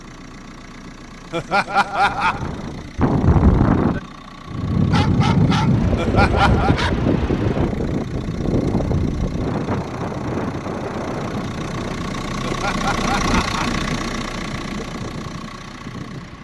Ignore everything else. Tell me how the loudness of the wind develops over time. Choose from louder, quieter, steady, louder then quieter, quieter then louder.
quieter.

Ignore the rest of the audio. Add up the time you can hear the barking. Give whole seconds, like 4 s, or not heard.
2 s.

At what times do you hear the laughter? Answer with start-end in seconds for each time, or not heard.
1.3-2.5, 6.0-6.8, 12.4-13.7.